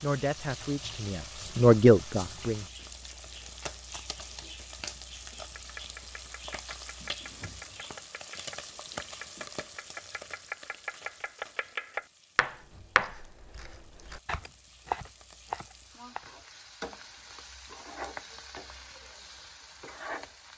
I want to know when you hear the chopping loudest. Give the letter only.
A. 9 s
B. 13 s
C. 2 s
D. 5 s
B.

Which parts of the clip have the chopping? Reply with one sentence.
You can hear the chopping from 5.5 to 16.3 s.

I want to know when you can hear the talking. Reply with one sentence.
You can hear the talking from 0.0 to 2.6 s.